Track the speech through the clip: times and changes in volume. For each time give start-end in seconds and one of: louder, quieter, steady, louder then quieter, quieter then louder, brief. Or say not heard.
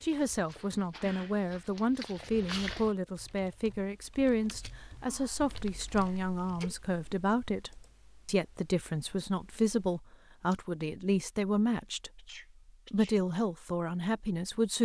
0.0-12.2 steady
12.9-14.7 brief.